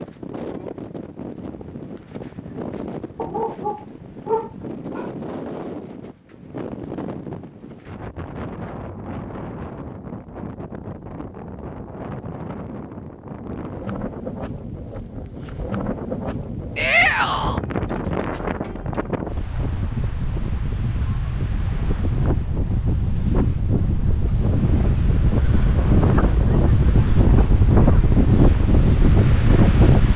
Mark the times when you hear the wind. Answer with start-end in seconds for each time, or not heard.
0.0-30.1.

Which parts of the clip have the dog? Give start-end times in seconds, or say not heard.
3.1-5.1.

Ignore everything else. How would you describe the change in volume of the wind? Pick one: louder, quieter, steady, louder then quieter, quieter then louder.
louder.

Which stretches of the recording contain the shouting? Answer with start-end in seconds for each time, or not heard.
16.8-17.6.